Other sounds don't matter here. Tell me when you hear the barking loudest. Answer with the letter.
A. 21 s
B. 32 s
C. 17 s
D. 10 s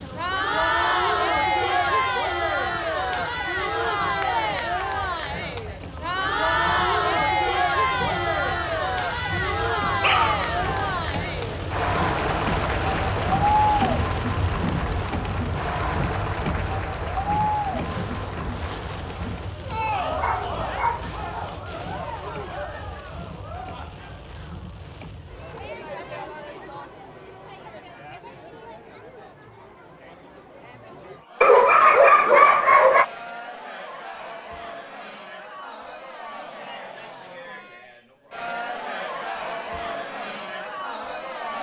B.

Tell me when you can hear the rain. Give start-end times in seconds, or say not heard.
0.0-25.8.